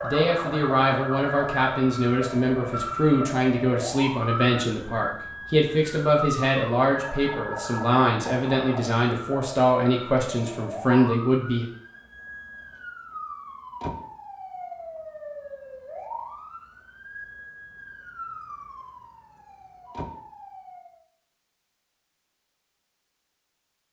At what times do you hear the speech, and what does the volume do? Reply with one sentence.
You can hear the speech from 0.0 to 11.7 s, at a steady volume.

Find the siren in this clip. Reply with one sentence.
You can hear the siren from 0.0 to 21.1 s.